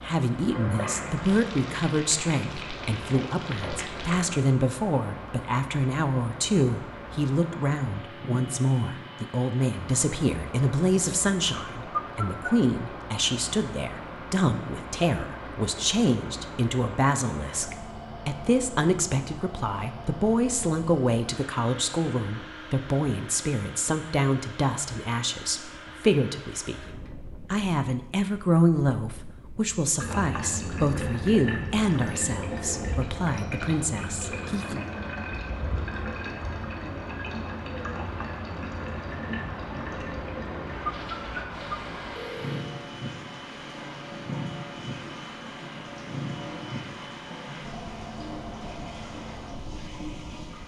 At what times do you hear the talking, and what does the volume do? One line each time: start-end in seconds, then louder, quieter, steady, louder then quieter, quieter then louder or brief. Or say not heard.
0.0-34.8 steady.